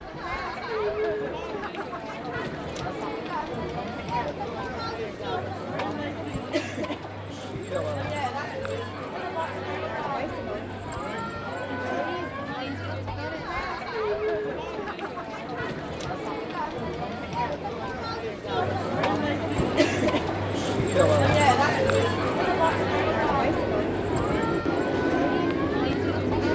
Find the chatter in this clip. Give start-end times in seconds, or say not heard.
0.0-26.5.